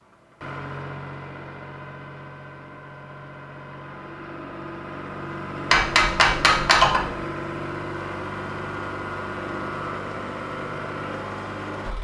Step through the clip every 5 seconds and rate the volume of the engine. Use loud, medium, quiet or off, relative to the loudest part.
medium, loud, loud.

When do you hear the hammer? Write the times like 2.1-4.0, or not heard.
5.7-7.2.